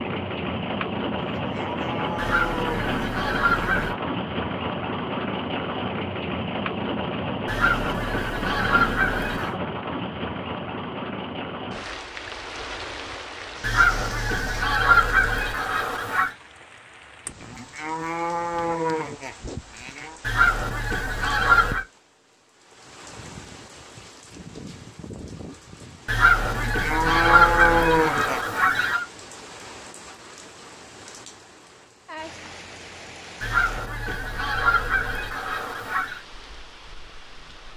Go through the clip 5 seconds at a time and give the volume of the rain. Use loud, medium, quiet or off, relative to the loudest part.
loud, loud, medium, quiet, quiet, quiet, quiet, quiet.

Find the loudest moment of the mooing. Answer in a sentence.
The volume of the mooing peaks at 28 seconds.